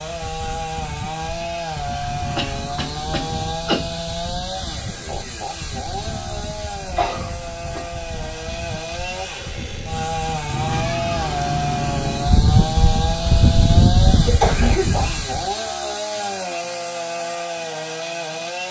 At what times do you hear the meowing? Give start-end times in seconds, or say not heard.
2.0-3.5, 10.5-12.5.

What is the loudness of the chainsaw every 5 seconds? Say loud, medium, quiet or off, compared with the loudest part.
loud, medium, loud, loud.